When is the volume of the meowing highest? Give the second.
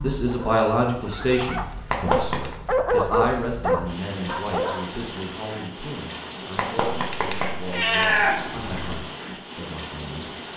8 s.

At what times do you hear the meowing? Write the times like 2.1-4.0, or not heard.
1.9-2.5, 6.5-9.1.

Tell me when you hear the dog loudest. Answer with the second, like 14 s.
3 s.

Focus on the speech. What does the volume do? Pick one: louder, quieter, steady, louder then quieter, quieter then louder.
quieter.